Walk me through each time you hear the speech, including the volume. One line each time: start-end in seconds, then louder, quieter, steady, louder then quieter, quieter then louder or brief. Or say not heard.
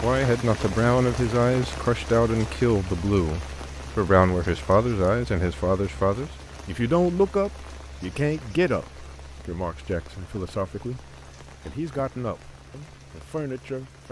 0.0-14.0 quieter.